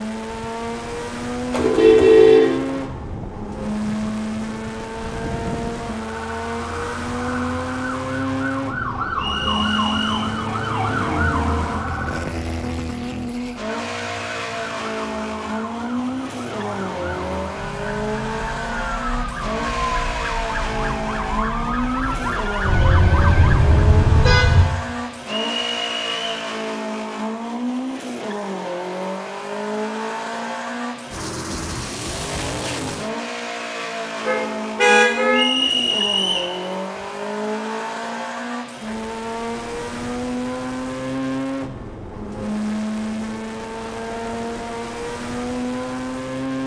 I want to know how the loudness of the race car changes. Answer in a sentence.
The volume of the race car stays about the same.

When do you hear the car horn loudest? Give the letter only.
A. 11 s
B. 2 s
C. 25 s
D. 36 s
B.